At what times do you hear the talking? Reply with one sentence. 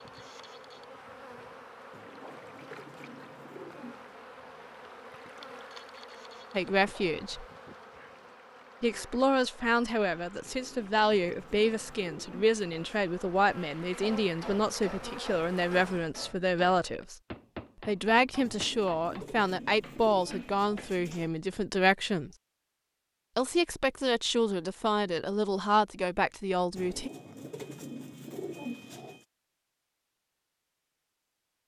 The talking can be heard from 6.5 to 7.5 s, from 8.8 to 17.1 s, from 17.9 to 22.3 s and from 23.4 to 27.1 s.